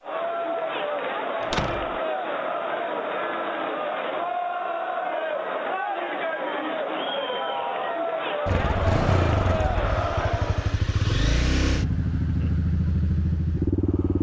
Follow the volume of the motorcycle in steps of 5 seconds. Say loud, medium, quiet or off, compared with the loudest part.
off, loud, loud.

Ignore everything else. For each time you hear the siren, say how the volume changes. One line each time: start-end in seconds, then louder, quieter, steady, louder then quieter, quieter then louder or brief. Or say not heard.
not heard.